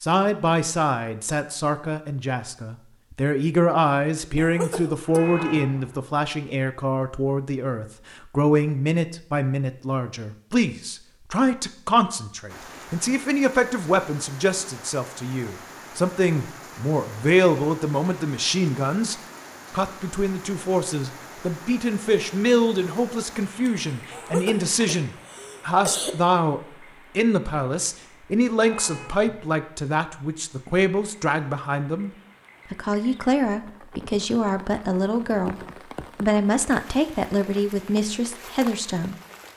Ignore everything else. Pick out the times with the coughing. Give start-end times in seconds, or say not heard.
4.3-5.2, 24.1-26.1.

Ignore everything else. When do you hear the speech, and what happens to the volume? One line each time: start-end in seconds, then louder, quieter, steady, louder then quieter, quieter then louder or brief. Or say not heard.
0.0-32.1 steady
32.7-39.1 steady.